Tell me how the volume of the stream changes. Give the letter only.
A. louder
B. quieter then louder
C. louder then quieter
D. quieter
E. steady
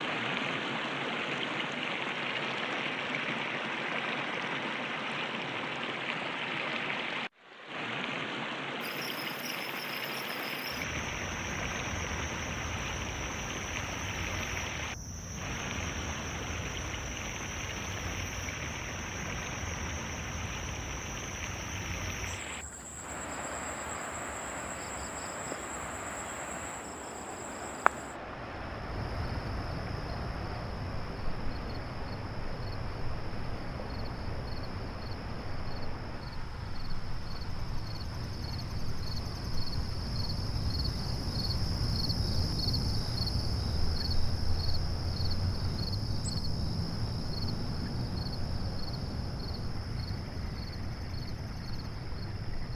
D.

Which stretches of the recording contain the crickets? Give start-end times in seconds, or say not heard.
8.8-52.7.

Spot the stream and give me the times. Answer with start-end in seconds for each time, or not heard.
0.0-52.7.